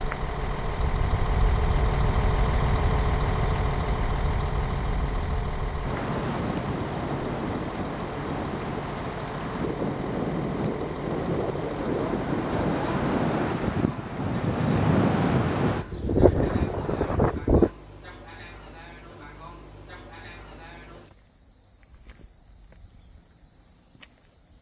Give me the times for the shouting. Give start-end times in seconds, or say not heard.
not heard.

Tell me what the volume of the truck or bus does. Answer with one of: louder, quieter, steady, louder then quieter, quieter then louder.
quieter.